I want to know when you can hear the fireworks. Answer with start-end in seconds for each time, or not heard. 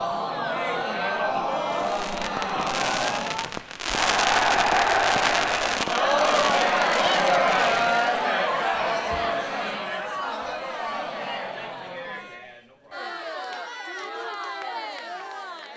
1.8-8.0.